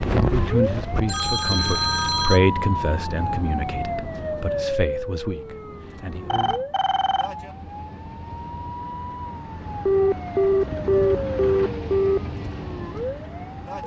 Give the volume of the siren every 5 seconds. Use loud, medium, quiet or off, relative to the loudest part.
loud, medium, medium.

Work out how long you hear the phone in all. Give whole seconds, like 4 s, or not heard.
6 s.